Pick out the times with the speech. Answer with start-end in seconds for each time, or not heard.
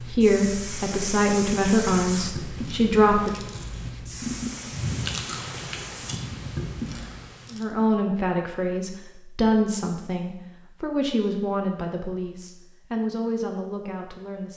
0.0-3.4, 7.5-14.5.